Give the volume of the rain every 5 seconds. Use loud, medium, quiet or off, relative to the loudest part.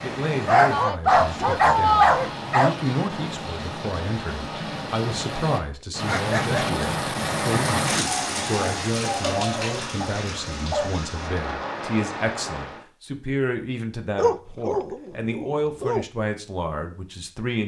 medium, loud, medium, off.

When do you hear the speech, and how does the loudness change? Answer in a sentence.
You can hear the speech from 0.0 to 17.6 s, at a steady volume.